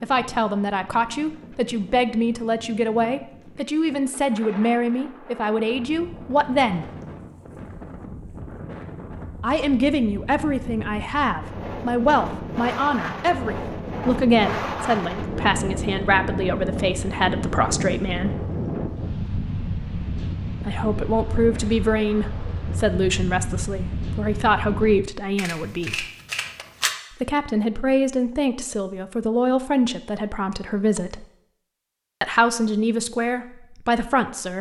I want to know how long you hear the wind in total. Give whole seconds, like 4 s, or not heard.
25 s.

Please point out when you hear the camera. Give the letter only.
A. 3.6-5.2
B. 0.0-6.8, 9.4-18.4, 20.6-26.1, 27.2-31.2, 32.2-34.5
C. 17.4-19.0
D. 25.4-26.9
D.